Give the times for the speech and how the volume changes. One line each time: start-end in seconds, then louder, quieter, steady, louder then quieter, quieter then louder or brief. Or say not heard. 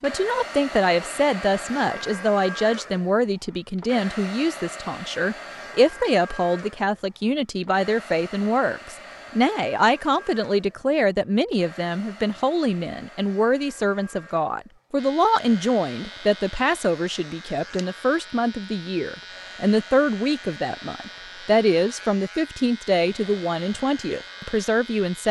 0.0-25.2 steady.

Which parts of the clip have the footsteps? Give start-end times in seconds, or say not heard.
not heard.